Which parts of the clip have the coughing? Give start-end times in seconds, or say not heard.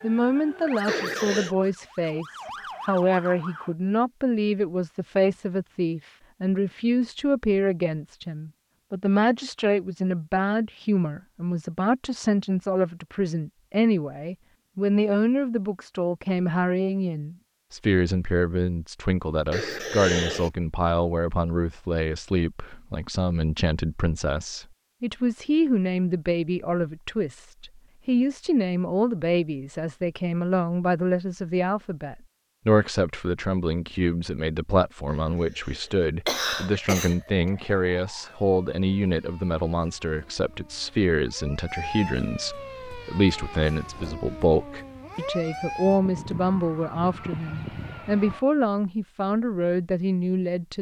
0.8-1.6, 19.5-20.5, 35.1-37.5.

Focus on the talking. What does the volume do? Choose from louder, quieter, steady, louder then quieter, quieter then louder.
steady.